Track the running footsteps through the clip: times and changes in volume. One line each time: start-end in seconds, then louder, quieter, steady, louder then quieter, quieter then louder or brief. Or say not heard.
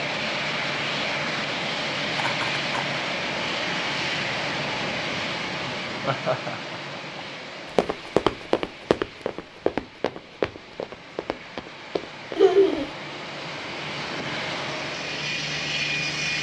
7.8-12.9 quieter.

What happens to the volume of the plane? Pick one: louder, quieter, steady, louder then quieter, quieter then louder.
quieter then louder.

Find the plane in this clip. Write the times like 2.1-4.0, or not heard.
0.0-16.3.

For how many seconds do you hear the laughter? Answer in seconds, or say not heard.
3 s.